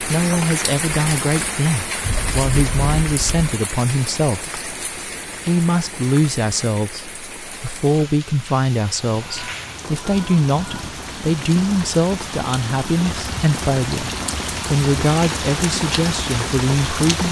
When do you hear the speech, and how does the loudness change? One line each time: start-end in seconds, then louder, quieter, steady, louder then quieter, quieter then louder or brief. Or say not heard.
0.0-4.5 steady
5.5-17.2 steady.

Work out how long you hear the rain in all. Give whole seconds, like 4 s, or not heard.
17 s.